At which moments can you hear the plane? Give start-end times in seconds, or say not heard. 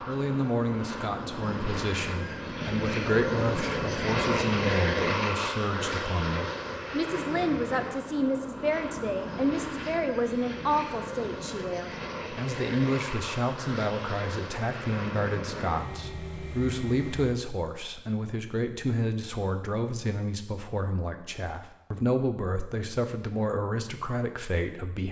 0.0-17.4.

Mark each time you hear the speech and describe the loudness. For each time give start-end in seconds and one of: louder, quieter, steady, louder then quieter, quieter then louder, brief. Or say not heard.
0.1-25.0 steady.